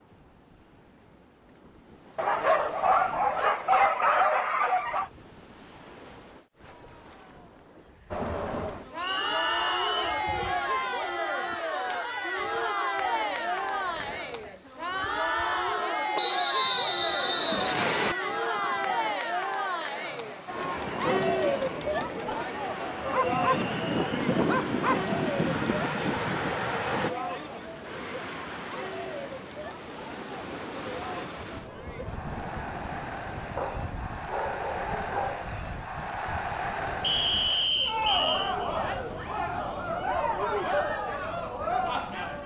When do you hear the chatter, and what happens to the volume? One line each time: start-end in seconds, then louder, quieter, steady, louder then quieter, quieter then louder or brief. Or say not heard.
8.1-42.4 quieter then louder.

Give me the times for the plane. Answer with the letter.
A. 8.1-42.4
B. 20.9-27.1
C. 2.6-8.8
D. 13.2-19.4
B.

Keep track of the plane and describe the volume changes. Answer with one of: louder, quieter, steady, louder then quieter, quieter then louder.
louder.